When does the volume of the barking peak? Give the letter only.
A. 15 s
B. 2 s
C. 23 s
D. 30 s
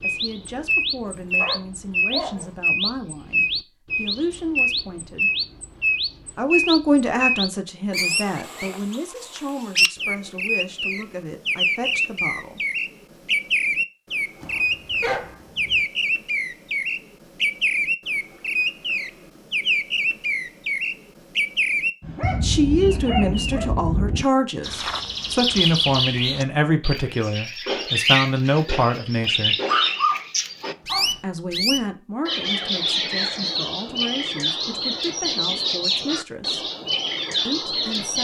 D.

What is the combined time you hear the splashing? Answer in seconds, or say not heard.
not heard.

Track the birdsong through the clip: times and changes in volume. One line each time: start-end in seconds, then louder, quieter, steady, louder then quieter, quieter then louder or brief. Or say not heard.
0.0-38.1 steady.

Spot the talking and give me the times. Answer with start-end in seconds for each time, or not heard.
0.0-5.3, 6.3-12.7, 22.4-29.6, 31.2-36.6, 37.5-38.1.